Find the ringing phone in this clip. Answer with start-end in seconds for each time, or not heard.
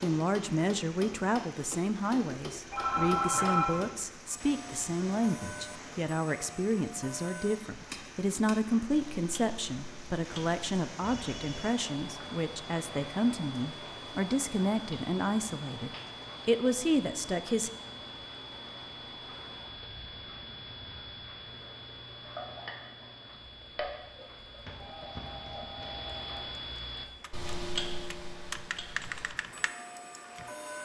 2.7-3.8, 11.0-11.8, 24.6-26.4.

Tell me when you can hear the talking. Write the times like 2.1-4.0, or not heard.
0.0-17.7.